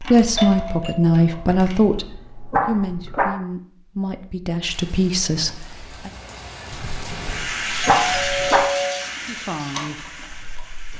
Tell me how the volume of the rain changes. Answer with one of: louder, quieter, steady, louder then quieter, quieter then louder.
louder then quieter.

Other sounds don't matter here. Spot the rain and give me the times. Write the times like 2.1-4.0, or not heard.
4.7-10.9.